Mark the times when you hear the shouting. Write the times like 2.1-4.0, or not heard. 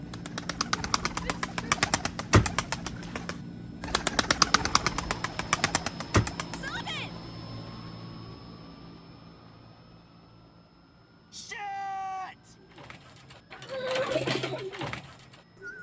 1.2-1.8, 6.5-7.2, 11.3-12.6.